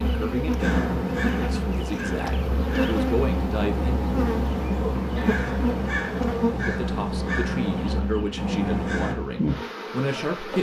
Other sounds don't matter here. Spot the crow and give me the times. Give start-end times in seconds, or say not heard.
0.6-9.2.